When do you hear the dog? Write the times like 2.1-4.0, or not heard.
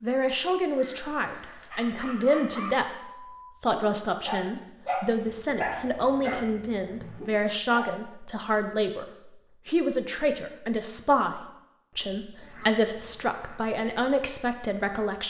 1.7-8.0.